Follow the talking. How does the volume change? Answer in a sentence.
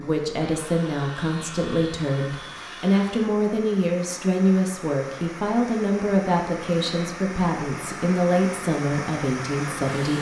The loudness of the talking stays about the same.